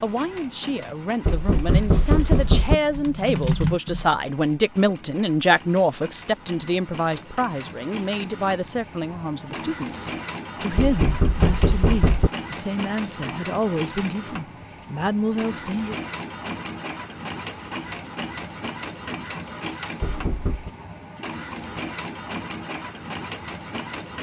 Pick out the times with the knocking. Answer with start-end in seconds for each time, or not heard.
1.2-2.8, 10.8-12.3, 20.0-20.7.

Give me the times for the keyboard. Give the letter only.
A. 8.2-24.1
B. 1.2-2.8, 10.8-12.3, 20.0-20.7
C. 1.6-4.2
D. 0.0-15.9
C.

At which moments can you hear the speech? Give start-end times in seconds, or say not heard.
0.0-15.9.